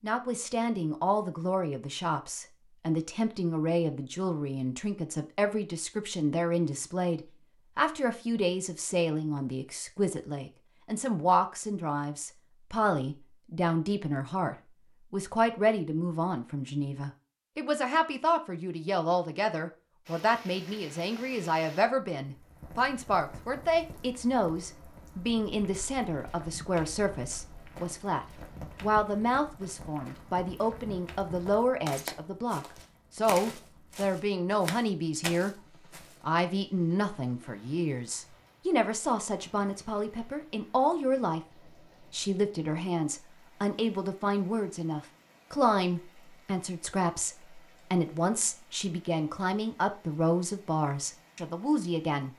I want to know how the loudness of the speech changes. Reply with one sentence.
The loudness of the speech stays about the same.